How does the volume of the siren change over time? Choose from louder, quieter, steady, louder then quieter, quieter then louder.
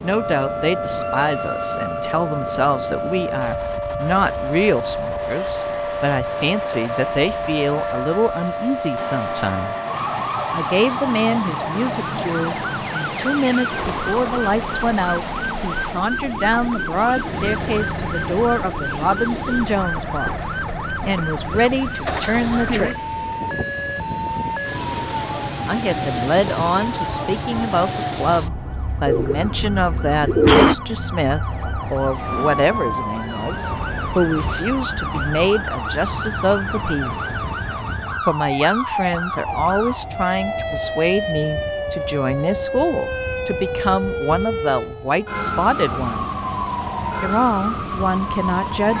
steady.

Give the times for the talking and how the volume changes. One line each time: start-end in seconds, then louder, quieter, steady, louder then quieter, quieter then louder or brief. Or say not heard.
0.0-9.8 steady
10.5-22.9 steady
25.6-37.4 steady
38.2-46.4 steady
47.2-48.9 brief.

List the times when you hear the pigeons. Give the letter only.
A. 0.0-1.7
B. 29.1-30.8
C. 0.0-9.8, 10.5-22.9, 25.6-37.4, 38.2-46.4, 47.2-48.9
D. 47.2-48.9
B.